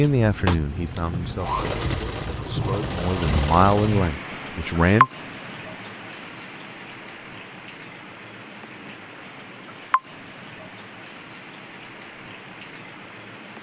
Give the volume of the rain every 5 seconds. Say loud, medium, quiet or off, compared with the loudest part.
loud, loud, medium.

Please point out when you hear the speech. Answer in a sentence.
The speech can be heard from 0.0 to 5.1 s.